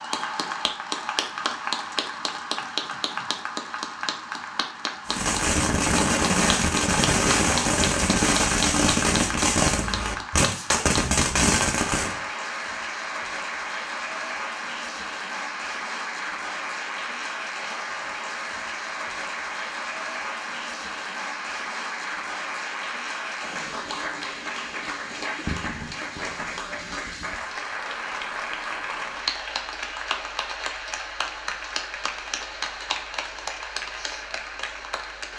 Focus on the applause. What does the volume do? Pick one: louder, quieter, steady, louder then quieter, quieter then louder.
steady.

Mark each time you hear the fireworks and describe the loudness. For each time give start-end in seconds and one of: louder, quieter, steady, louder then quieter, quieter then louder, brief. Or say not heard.
5.0-12.2 steady.